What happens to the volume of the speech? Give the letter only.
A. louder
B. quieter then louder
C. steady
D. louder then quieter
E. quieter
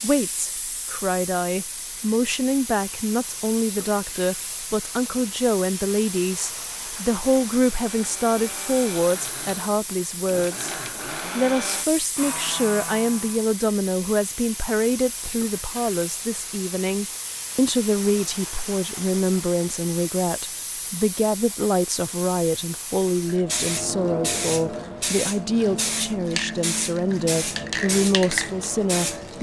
C.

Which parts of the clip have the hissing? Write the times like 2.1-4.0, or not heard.
0.0-29.3.